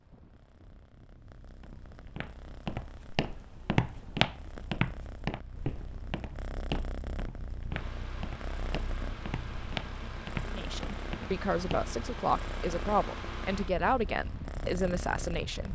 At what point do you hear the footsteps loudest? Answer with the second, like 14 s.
4 s.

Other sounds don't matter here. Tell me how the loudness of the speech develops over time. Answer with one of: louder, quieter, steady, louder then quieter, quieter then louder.
steady.